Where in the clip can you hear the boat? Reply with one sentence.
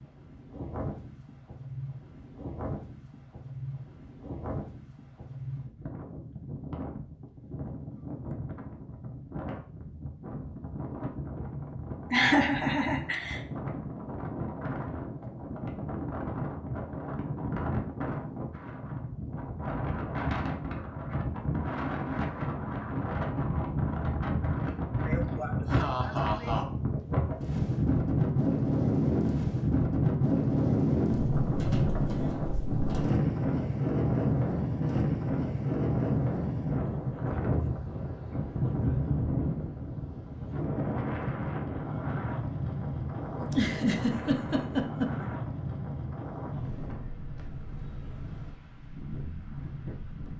The boat can't be heard in this clip.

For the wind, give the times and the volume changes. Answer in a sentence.
You can hear the wind from 0.0 to 50.3 s, getting louder then quieter.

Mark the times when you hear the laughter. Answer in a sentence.
The laughter can be heard from 12.1 to 13.4 s, from 25.1 to 26.6 s and from 43.4 to 45.3 s.